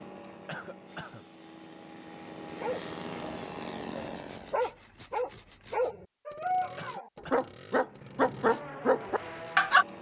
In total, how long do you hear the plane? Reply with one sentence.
The plane can be heard for 7 seconds in total.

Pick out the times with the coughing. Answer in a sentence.
The coughing can be heard from 0.5 to 1.2 s and from 6.8 to 7.5 s.